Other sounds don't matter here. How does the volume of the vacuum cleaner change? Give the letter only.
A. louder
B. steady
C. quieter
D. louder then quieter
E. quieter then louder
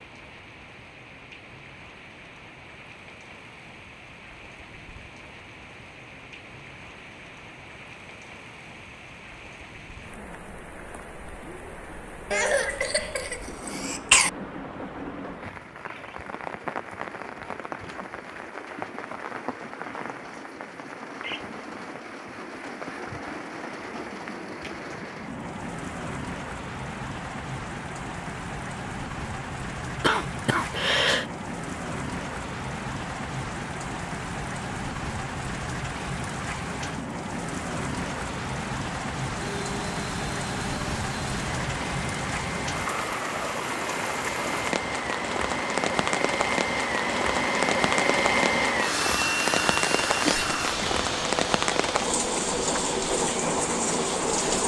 D.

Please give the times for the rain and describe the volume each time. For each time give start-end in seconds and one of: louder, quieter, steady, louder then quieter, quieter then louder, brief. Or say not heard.
0.0-54.6 louder.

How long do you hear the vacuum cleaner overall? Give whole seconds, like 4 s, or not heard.
15 s.